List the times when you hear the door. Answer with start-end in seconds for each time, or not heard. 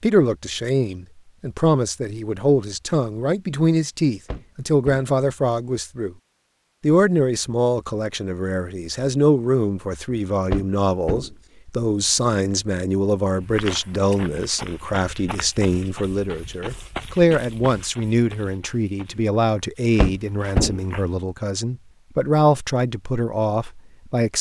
4.2-5.1, 10.5-11.3, 19.9-20.8.